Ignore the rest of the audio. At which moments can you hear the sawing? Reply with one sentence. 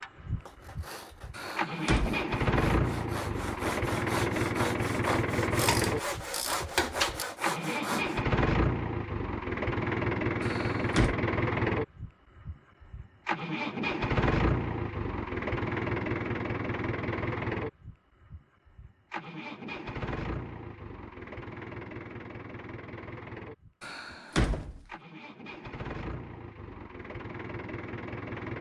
You can hear the sawing from 0.5 to 8.2 s.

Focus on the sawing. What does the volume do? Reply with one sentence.
The loudness of the sawing goes up.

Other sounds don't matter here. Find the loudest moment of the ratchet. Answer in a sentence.
The volume of the ratchet peaks at 7 seconds.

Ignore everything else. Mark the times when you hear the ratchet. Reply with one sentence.
You can hear the ratchet from 5.5 to 7.2 s.